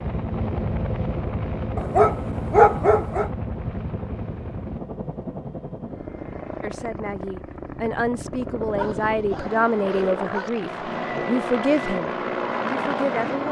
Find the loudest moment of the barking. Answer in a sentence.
The volume of the barking peaks at 3 seconds.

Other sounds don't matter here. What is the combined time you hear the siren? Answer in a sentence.
The siren can't be heard in this clip.